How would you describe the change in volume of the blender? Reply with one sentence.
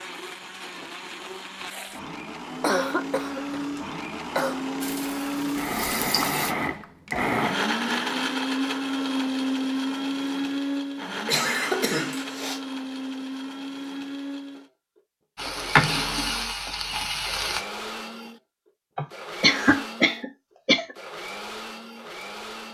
The volume of the blender goes up, then down.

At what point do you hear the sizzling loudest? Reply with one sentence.
The volume of the sizzling peaks at 16 seconds.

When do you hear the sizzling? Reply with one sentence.
The sizzling can be heard from 4.8 to 6.5 s and from 15.3 to 17.6 s.